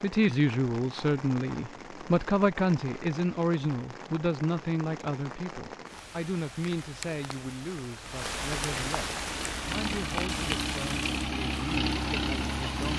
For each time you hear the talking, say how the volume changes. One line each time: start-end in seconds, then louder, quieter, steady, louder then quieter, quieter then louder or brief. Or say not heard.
0.0-12.9 quieter.